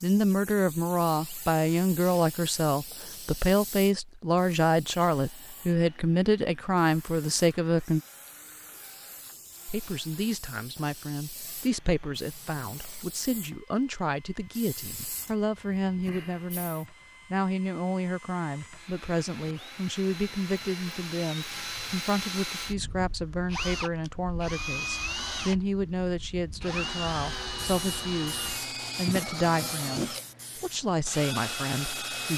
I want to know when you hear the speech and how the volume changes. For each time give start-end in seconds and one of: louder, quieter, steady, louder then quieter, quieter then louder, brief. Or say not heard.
0.0-8.0 steady
9.7-32.3 steady.